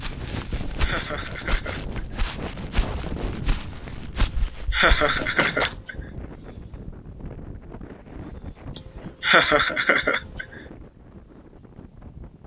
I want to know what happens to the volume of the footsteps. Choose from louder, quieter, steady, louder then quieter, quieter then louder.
steady.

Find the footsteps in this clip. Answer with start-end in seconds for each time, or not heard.
0.0-5.8.